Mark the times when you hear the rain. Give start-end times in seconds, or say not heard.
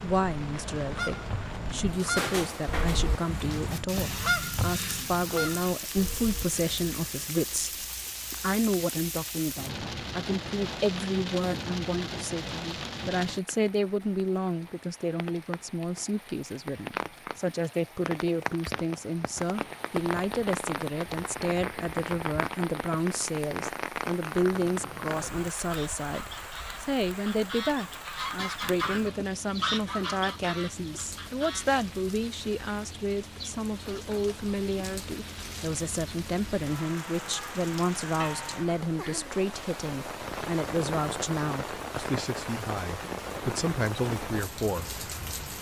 0.0-45.5.